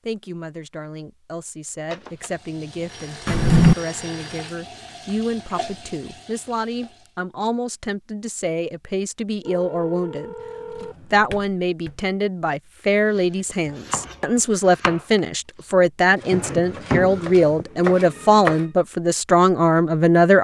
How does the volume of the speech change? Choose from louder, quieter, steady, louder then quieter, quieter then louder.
louder.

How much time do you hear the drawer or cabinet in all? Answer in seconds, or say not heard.
3 s.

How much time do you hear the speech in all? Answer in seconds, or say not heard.
20 s.